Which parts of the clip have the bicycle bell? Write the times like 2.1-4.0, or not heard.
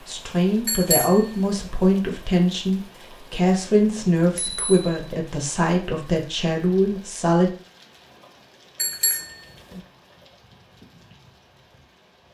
0.7-1.7, 4.2-5.2, 8.8-9.8.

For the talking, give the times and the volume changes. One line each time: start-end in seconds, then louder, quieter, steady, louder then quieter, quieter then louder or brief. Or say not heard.
0.1-7.5 steady.